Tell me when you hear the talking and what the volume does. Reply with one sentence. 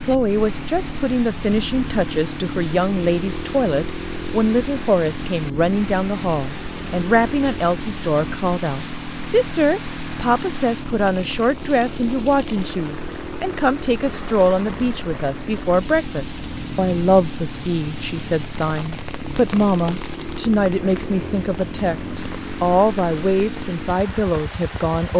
You can hear the talking from 0.0 to 25.1 s, at a steady volume.